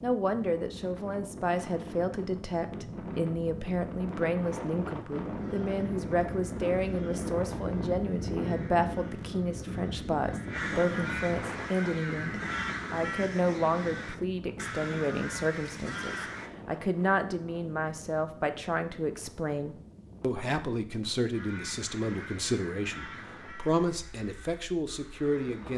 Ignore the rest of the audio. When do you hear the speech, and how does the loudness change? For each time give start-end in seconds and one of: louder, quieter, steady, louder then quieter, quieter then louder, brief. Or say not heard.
0.0-25.7 steady.